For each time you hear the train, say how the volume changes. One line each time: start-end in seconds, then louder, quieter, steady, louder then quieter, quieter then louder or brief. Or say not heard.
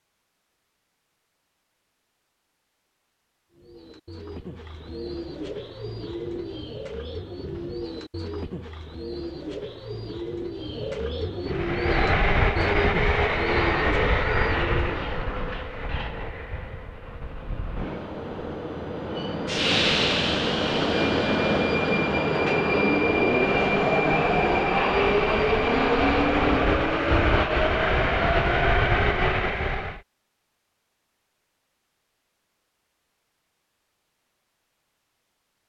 11.4-30.0 quieter then louder.